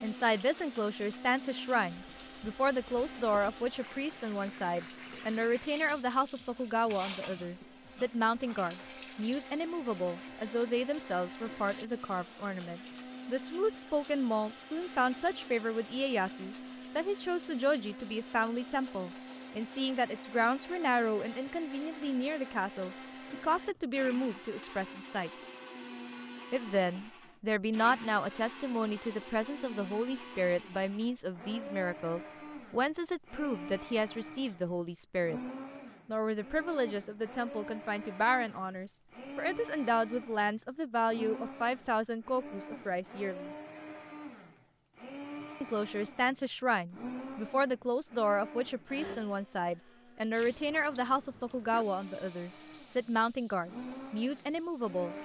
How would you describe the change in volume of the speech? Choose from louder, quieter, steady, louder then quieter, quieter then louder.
steady.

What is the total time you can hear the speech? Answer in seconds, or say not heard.
51 s.